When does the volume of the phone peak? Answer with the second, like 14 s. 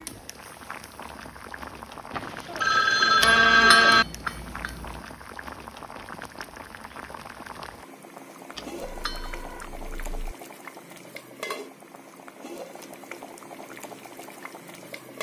4 s.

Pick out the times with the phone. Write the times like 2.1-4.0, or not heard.
2.1-4.0, 8.8-10.3.